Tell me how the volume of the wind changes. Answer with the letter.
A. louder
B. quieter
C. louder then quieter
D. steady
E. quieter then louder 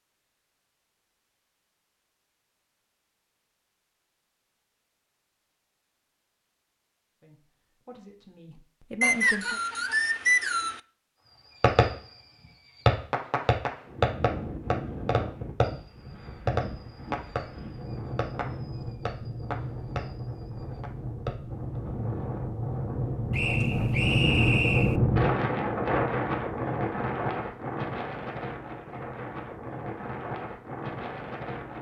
C.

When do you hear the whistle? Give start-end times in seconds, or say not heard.
9.0-10.8, 23.3-25.0.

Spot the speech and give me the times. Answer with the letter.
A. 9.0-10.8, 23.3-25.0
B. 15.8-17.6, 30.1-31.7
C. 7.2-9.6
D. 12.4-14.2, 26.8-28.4
C.